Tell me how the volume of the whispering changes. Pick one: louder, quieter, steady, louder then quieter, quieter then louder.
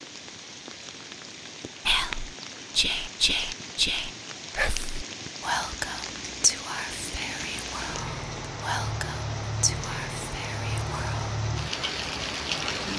quieter.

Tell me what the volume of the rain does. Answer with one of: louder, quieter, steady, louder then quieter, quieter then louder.
louder.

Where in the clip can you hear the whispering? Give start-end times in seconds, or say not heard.
1.9-11.3.